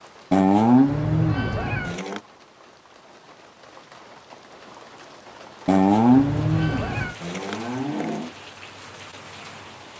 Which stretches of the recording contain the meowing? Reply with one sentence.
The meowing can be heard from 0.8 to 2.0 s and from 6.1 to 7.2 s.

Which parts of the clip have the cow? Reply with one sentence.
You can hear the cow from 0.3 to 2.2 s and from 5.7 to 8.3 s.